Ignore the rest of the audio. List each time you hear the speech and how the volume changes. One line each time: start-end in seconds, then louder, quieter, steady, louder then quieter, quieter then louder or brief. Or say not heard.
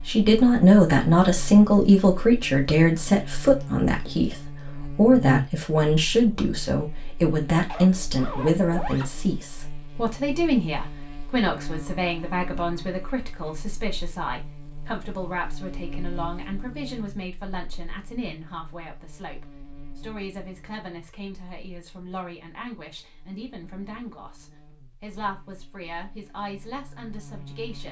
0.1-27.8 quieter.